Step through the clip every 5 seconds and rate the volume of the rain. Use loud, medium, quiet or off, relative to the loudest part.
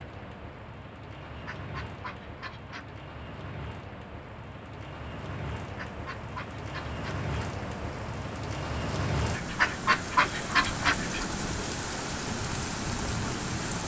medium, loud, loud.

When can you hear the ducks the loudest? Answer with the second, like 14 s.
10 s.